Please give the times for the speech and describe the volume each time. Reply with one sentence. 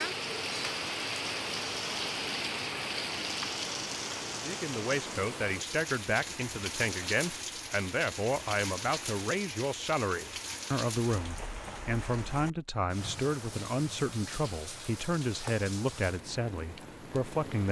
You can hear the speech from 4.4 to 17.6 s, at a steady volume.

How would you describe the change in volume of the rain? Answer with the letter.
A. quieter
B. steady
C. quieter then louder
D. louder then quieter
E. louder
A.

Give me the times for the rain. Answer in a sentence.
The rain can be heard from 0.0 to 17.6 s.